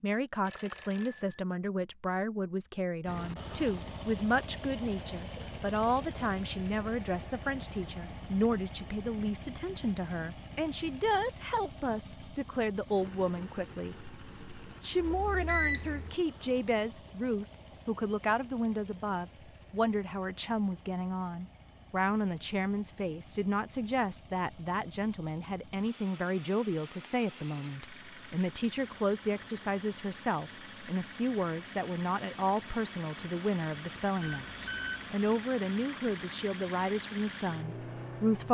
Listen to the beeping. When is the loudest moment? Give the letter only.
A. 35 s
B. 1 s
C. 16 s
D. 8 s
C.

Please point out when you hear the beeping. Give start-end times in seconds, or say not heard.
0.4-1.4, 15.0-16.1, 34.2-35.0.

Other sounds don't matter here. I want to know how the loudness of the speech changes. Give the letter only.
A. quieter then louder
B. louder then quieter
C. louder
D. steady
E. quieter
D.